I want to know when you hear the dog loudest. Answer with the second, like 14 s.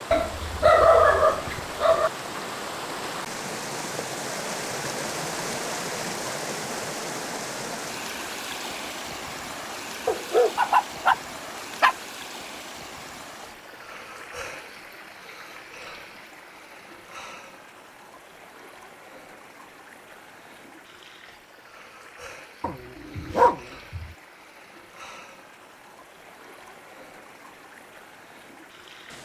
1 s.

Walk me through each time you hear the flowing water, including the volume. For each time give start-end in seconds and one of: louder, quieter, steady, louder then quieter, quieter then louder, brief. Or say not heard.
0.0-29.2 quieter.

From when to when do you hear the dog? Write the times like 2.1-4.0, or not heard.
0.1-2.1, 10.1-11.9, 22.6-24.1.